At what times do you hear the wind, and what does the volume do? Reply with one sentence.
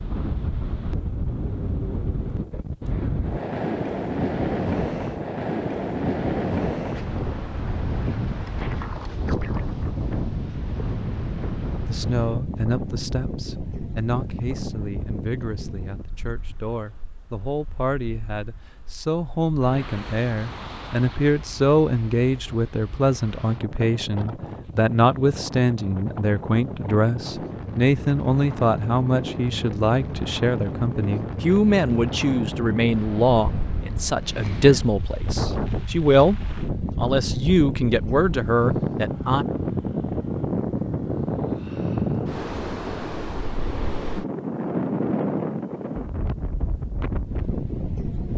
The wind can be heard from 0.0 to 48.3 s, getting quieter then louder.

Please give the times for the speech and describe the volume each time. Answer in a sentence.
The speech can be heard from 11.8 to 39.5 s, getting louder.